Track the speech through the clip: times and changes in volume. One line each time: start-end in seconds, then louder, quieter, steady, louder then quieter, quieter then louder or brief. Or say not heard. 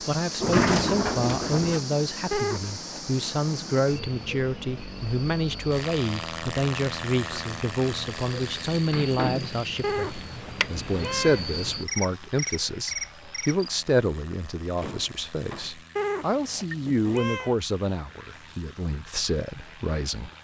0.0-20.3 steady.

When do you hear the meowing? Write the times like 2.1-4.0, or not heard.
2.3-2.8, 9.8-11.4, 15.9-17.6.